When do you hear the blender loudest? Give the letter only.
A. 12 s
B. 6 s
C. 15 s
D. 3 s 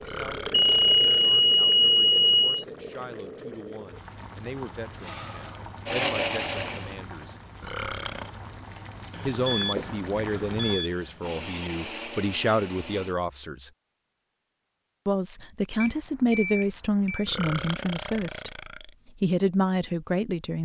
B.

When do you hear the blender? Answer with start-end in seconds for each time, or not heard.
5.0-7.1, 11.2-13.2.